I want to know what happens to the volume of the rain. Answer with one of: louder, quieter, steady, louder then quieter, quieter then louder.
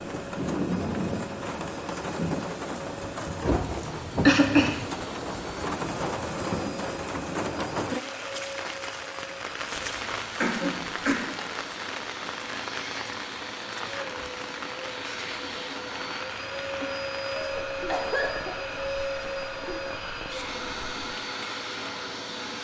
quieter.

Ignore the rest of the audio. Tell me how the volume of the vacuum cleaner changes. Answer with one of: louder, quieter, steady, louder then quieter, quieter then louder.
louder.